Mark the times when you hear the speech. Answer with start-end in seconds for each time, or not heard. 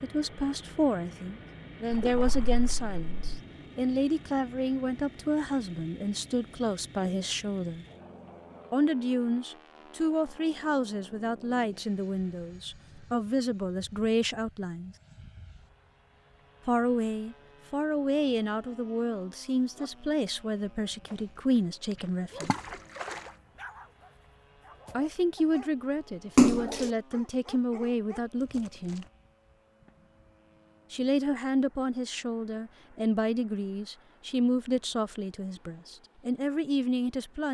0.0-7.8, 8.7-14.9, 16.6-22.6, 24.9-29.1, 30.9-37.4.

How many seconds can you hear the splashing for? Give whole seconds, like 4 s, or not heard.
3 s.